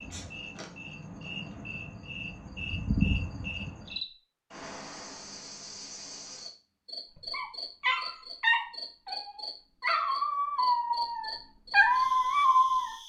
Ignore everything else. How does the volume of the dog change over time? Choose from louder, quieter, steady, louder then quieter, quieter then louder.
quieter then louder.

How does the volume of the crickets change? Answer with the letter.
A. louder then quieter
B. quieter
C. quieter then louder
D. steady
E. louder
A.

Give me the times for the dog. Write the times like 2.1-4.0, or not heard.
7.2-12.9.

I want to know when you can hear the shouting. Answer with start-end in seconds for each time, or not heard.
not heard.